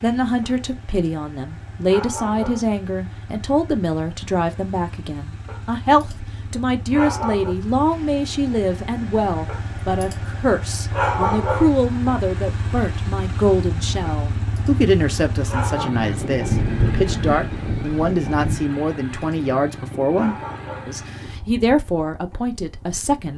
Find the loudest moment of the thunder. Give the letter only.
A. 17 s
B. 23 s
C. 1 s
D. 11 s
A.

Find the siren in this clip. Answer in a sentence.
You can't hear the siren here.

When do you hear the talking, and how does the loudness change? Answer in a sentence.
You can hear the talking from 0.0 to 23.3 s, at a steady volume.